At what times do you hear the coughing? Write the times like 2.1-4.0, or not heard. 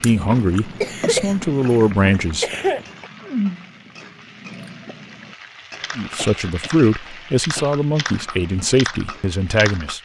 0.5-3.1, 6.2-7.8.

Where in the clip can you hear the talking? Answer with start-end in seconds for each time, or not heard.
0.0-2.5, 6.0-9.9.